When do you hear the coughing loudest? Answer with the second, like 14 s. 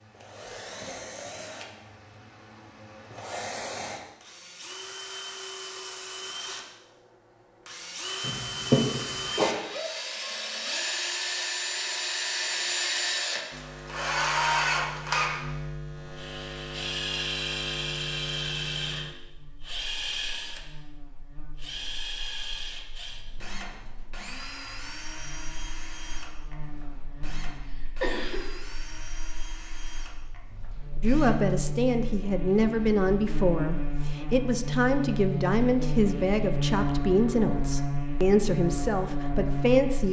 9 s.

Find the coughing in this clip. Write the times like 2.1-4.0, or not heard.
8.2-9.6, 27.6-28.4.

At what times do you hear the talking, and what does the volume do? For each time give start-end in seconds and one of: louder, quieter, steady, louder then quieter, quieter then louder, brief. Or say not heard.
31.0-40.0 steady.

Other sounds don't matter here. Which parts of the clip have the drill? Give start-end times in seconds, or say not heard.
0.0-6.7, 7.7-31.6.